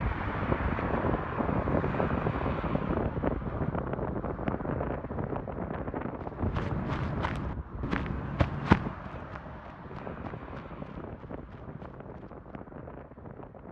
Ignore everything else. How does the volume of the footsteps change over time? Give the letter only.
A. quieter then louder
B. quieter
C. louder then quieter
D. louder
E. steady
C.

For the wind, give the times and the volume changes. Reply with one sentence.
The wind can be heard from 0.0 to 13.6 s, getting quieter.